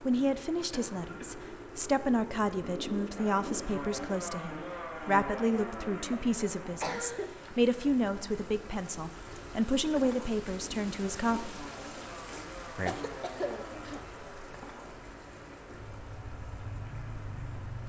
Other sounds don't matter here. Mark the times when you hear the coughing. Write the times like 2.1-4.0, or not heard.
0.7-1.5, 6.1-7.3, 12.2-14.1.